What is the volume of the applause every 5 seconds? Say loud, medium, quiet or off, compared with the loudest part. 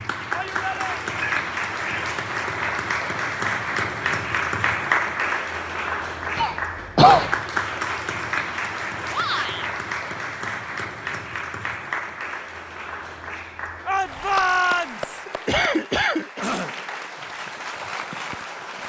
loud, loud, medium, medium.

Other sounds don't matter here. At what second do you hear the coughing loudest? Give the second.
7 s.